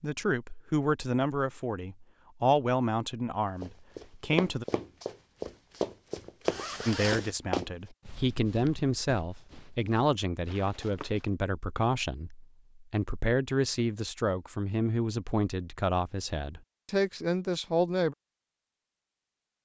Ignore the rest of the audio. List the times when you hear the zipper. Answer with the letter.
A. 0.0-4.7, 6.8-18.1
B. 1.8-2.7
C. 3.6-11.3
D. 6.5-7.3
D.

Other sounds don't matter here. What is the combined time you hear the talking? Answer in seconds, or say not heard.
16 s.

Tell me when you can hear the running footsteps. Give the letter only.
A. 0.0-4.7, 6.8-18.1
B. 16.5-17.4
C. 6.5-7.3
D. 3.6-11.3
D.